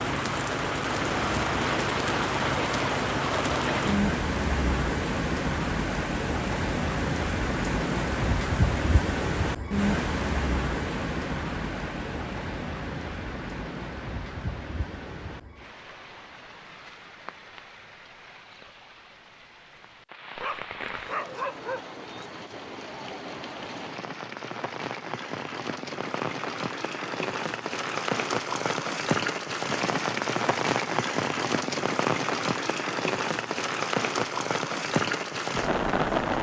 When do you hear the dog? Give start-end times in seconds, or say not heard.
20.4-22.2.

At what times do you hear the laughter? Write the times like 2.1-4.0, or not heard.
not heard.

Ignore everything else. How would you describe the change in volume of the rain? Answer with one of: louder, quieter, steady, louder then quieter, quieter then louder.
quieter then louder.